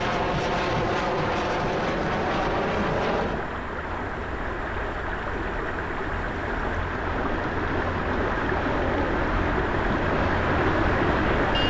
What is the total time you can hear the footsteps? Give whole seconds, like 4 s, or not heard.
not heard.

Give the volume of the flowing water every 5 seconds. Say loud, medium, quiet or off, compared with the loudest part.
medium, loud, loud.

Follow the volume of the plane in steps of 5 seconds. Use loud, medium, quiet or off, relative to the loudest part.
loud, medium, loud.